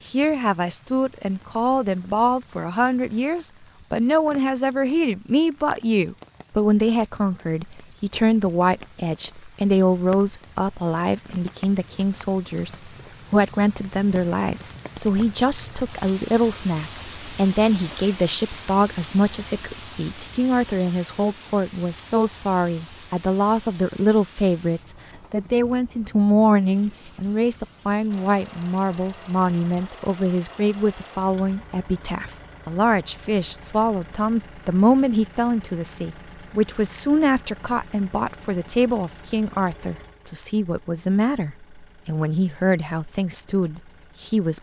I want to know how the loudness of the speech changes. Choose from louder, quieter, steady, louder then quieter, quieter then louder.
steady.